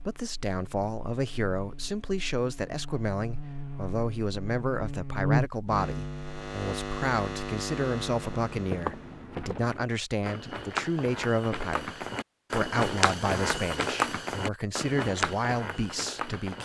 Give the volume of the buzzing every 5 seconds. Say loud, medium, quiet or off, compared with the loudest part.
medium, loud, off, off.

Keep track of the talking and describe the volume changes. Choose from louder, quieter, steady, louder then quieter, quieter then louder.
steady.